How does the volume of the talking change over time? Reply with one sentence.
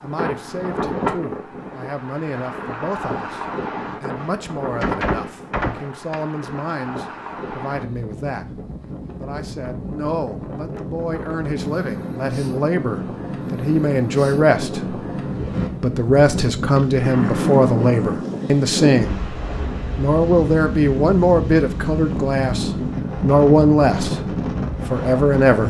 The loudness of the talking goes up.